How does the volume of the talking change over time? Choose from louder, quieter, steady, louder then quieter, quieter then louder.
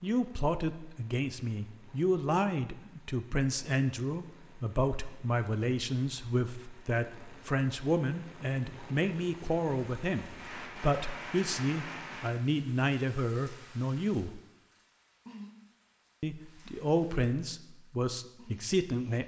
steady.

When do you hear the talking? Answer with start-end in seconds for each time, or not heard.
0.0-14.4, 16.2-19.2.